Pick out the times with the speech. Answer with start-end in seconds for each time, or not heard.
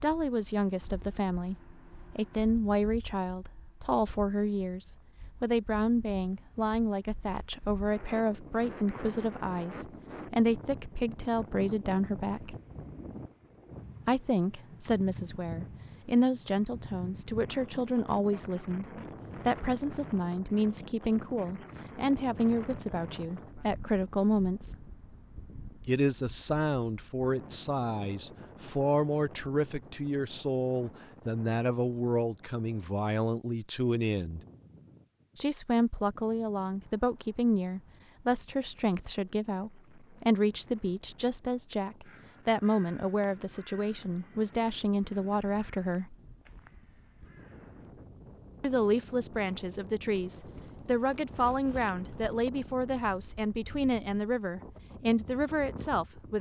0.0-12.6, 14.1-24.9, 25.9-34.4, 35.4-46.1, 48.6-56.3.